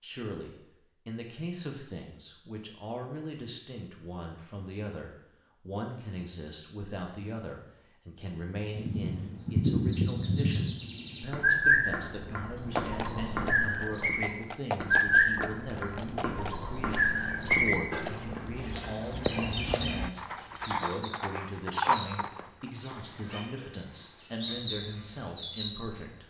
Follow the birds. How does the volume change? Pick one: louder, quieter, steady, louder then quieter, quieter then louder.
quieter.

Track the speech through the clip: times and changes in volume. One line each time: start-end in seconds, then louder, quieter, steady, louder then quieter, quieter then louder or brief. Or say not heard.
0.0-26.2 steady.